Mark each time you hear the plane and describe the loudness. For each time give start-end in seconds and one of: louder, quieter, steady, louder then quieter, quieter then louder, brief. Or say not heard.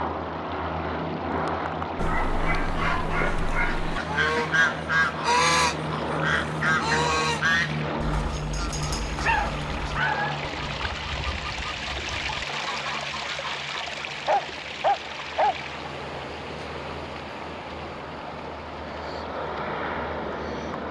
0.0-20.8 quieter then louder.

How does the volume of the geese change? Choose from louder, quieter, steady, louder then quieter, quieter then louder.
quieter.